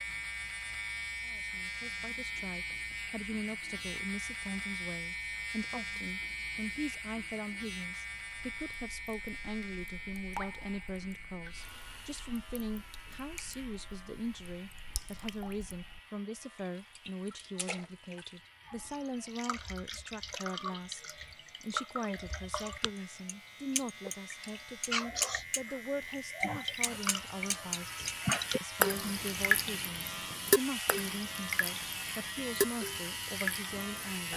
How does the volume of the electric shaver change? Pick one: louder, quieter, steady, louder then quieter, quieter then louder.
quieter then louder.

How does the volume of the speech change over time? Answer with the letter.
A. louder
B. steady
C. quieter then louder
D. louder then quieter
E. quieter
B.